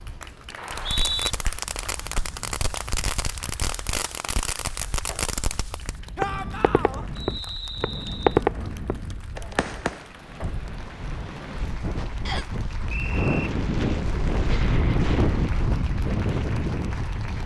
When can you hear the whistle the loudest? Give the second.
1 s.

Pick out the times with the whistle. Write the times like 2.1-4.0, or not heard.
0.6-1.3, 7.2-8.4, 12.2-13.5.